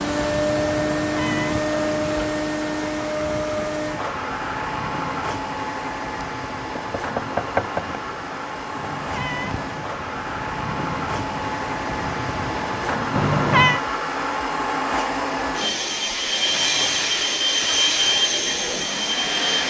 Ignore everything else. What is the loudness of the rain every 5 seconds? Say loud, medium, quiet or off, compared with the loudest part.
loud, medium, loud, off.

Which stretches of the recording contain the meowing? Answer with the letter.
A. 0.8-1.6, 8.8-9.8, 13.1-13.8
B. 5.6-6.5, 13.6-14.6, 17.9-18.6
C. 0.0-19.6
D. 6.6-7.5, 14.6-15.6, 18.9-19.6
A.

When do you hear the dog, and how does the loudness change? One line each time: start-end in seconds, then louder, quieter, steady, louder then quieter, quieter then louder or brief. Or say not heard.
not heard.